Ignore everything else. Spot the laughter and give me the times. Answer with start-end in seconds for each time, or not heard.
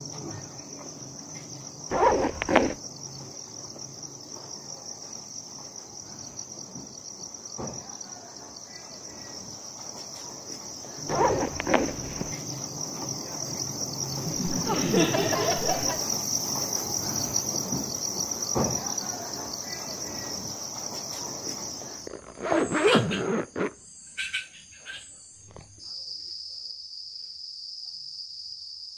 14.2-16.0.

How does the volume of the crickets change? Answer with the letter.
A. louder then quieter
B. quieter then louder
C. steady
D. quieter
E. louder
A.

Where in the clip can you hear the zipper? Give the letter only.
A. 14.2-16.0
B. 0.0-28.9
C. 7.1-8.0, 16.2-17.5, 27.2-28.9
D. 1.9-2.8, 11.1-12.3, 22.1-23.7
D.